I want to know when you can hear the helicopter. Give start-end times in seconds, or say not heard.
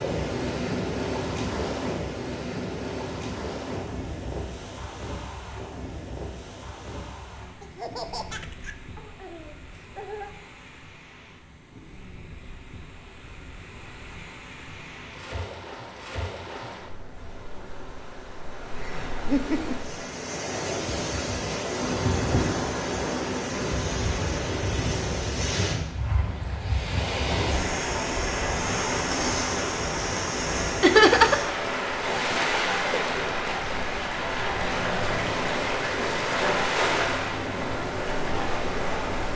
34.4-39.3.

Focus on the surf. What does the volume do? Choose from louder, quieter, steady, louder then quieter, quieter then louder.
quieter then louder.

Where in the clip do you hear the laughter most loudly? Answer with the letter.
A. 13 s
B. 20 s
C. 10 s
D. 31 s
D.